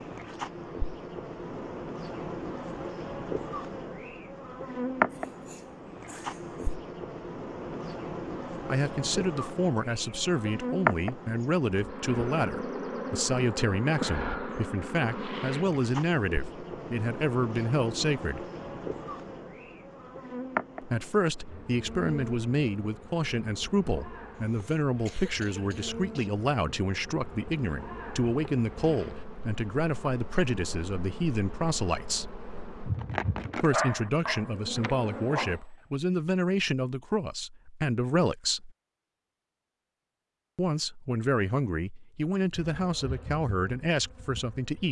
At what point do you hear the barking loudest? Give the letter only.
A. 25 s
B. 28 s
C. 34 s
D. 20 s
C.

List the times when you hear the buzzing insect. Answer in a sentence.
The buzzing insect can be heard from 0.0 to 35.6 s and from 42.5 to 44.8 s.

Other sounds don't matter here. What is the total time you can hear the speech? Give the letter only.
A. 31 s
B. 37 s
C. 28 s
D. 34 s
A.